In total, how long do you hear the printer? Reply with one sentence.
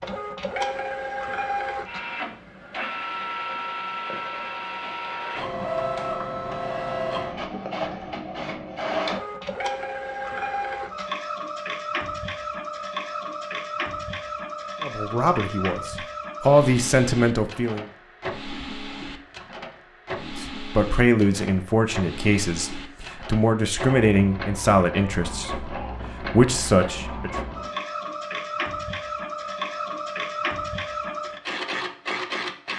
You can hear the printer for 33 seconds altogether.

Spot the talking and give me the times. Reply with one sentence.
The talking can be heard from 14.8 to 17.9 s and from 20.2 to 27.3 s.